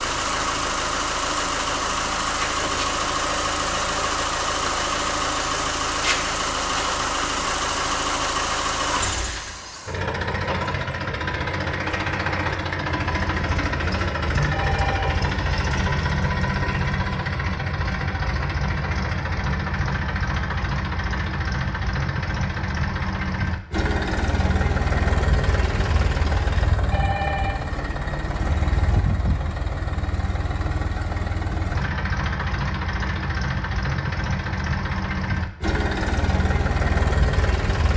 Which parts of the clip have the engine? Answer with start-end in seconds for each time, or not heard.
0.0-37.9.